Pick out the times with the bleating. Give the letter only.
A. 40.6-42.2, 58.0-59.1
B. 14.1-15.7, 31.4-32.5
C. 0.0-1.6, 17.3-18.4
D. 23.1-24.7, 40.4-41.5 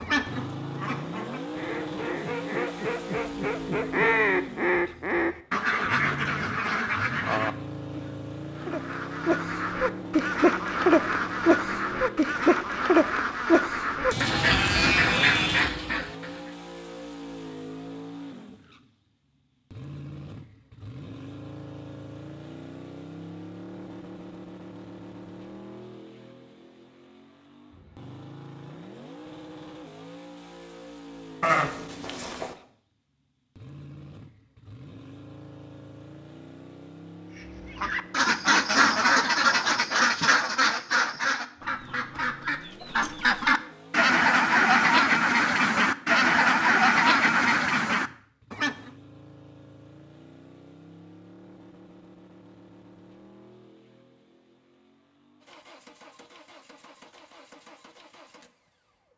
B.